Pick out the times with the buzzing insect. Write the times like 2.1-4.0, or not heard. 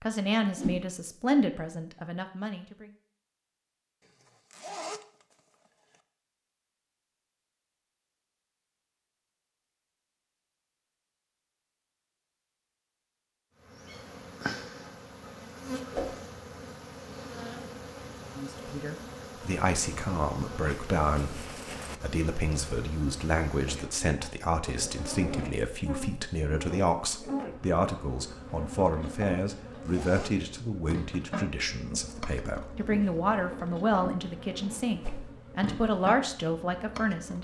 13.6-37.3.